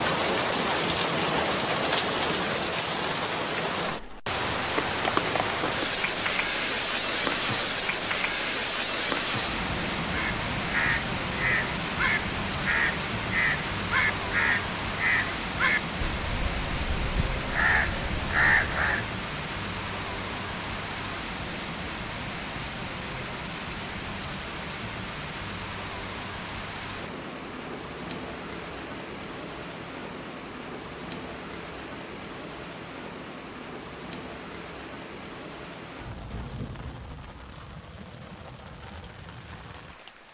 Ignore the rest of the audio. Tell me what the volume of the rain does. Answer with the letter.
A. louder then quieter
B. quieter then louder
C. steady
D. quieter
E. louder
D.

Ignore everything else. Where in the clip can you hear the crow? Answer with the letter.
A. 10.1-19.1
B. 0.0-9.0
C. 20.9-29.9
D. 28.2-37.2
A.